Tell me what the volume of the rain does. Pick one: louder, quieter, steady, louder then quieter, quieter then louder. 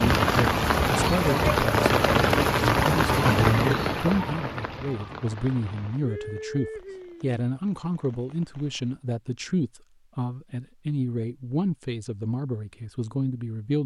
quieter.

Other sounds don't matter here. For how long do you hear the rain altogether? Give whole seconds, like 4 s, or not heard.
9 s.